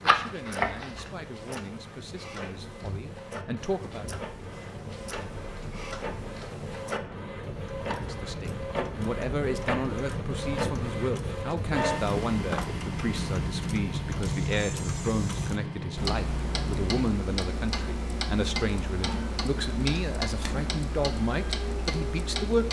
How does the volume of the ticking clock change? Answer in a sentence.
The volume of the ticking clock goes up.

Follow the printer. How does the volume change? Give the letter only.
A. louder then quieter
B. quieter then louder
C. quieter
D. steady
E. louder
A.